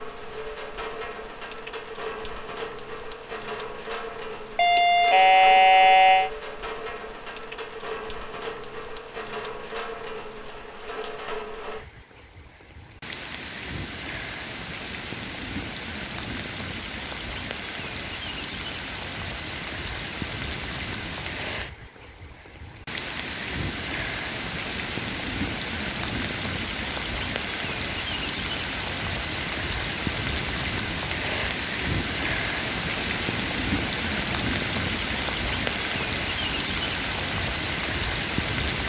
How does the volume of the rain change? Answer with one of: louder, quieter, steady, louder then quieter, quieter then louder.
louder.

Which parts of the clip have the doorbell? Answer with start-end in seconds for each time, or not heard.
4.5-6.3.